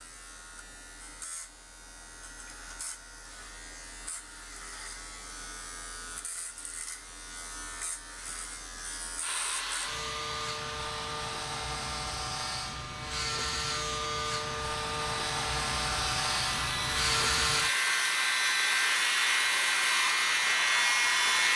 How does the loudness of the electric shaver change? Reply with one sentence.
The loudness of the electric shaver goes up.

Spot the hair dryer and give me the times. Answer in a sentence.
The hair dryer can be heard from 9.2 to 21.5 s.